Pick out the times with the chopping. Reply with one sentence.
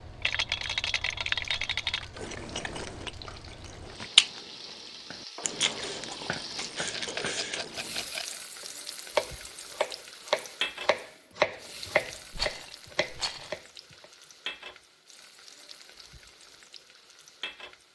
The chopping can be heard from 8.6 to 14.1 s.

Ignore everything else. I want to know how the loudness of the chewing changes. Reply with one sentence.
The volume of the chewing goes up, then down.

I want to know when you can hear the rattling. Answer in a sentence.
You can hear the rattling from 0.2 to 2.0 s, from 6.9 to 8.3 s and from 12.3 to 13.6 s.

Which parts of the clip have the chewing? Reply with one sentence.
The chewing can be heard from 2.1 to 8.1 s.